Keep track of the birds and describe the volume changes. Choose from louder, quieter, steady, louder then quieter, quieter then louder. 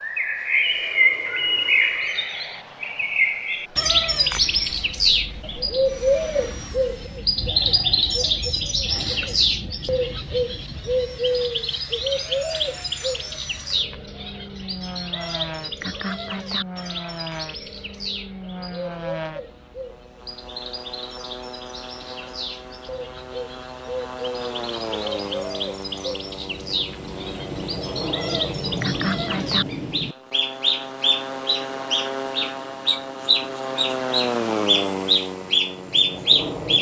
quieter then louder.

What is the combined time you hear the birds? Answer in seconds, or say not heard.
37 s.